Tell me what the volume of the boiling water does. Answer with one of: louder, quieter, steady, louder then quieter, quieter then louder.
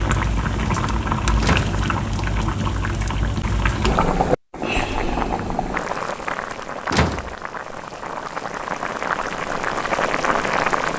quieter then louder.